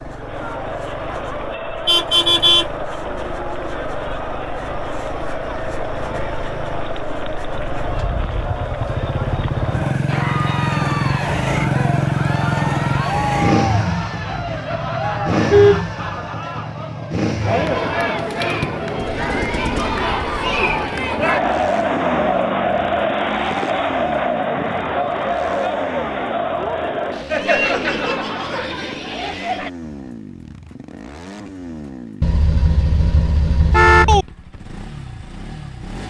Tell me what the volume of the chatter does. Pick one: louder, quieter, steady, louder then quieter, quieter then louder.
louder.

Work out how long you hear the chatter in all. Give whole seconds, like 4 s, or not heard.
30 s.